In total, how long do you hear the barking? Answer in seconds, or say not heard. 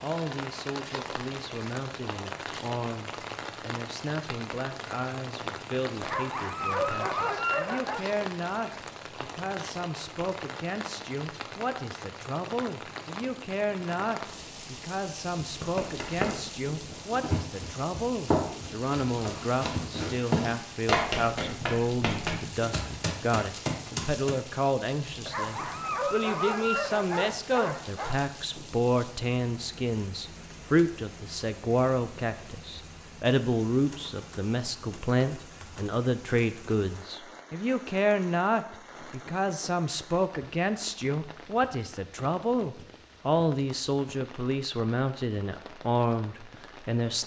5 s.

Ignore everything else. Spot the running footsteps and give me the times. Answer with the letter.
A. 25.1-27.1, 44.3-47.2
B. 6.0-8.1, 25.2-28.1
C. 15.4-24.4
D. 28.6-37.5
C.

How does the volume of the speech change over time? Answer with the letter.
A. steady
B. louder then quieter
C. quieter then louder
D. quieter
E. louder
E.